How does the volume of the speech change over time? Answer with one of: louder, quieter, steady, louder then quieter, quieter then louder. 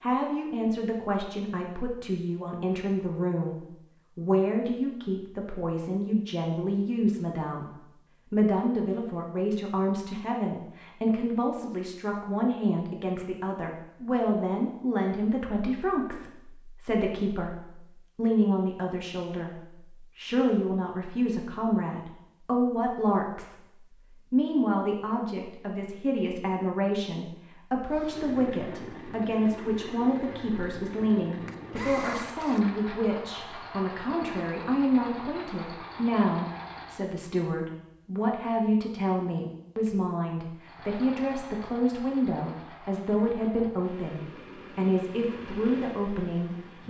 steady.